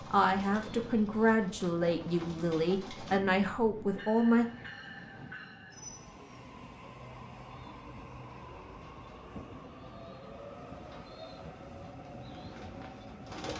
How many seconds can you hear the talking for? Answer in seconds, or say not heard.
4 s.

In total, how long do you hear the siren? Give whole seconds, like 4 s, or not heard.
not heard.